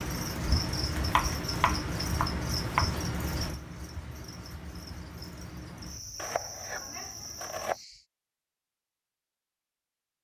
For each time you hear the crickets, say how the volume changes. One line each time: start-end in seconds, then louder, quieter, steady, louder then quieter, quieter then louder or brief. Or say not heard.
0.0-8.1 quieter.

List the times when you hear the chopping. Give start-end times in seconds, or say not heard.
1.1-3.0, 6.2-7.8.